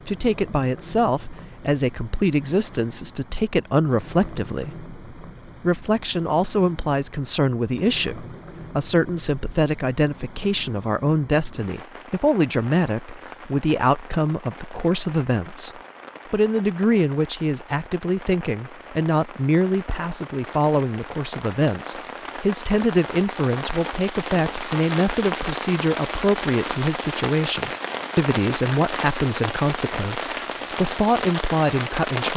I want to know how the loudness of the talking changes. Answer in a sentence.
The loudness of the talking stays about the same.